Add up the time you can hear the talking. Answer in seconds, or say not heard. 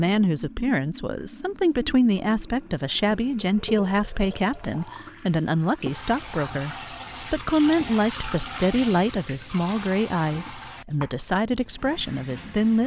13 s.